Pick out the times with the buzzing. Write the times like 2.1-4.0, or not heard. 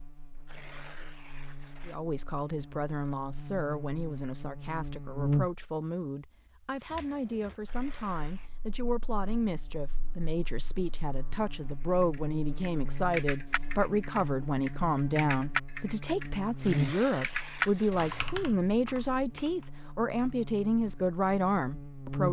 0.0-22.2.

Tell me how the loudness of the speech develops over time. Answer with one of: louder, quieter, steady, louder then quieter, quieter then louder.
louder.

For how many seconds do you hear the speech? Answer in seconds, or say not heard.
20 s.